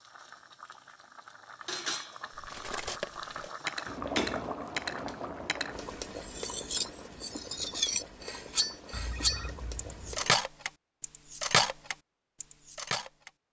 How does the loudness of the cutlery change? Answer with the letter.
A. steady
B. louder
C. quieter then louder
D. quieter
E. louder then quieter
B.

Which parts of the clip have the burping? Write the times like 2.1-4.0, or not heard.
not heard.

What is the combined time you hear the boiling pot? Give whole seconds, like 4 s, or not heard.
10 s.